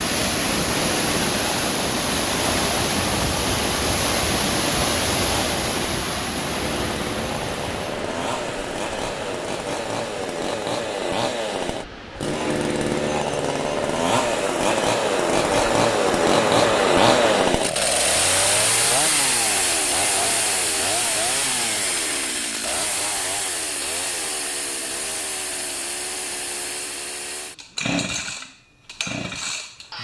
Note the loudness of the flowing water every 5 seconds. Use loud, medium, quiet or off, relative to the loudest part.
loud, medium, medium, loud, off, off.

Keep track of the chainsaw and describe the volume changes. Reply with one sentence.
The loudness of the chainsaw goes up, then down.